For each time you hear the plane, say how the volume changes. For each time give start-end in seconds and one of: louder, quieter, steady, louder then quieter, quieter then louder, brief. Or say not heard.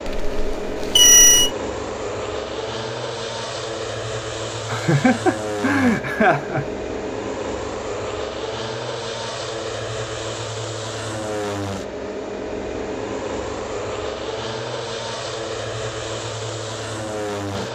0.0-17.7 steady.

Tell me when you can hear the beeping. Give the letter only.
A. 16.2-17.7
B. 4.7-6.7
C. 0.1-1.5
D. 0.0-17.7
C.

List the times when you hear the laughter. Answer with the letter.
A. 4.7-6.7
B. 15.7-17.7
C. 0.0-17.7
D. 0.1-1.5
A.